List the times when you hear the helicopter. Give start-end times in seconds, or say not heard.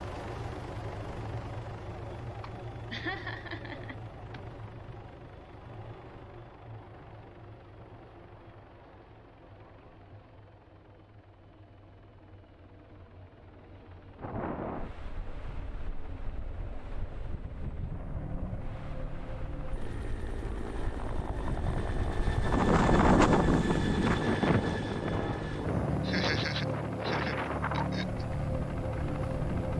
0.0-29.7.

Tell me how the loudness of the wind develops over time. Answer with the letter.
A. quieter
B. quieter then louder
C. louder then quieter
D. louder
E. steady
C.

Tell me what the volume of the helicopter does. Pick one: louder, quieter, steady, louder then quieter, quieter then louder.
quieter then louder.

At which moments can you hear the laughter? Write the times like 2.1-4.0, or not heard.
2.4-4.4, 26.0-28.2.